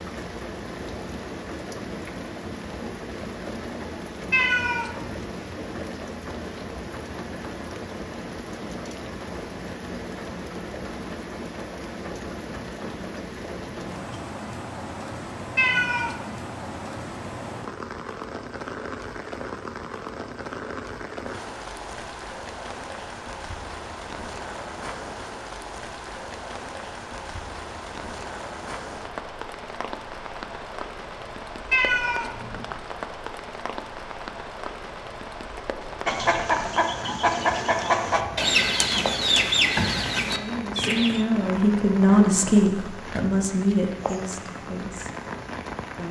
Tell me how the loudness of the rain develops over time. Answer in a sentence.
The loudness of the rain stays about the same.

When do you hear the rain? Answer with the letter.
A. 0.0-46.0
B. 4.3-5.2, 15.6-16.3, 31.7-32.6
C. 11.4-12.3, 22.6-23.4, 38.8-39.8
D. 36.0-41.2
A.